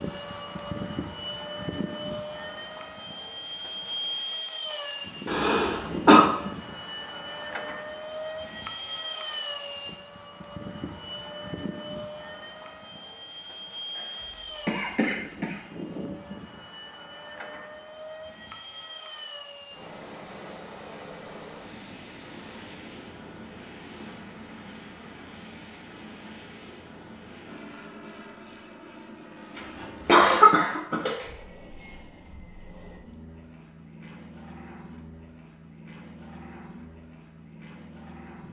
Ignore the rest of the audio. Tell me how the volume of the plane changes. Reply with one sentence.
The loudness of the plane goes down.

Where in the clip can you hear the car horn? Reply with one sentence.
You can't hear the car horn here.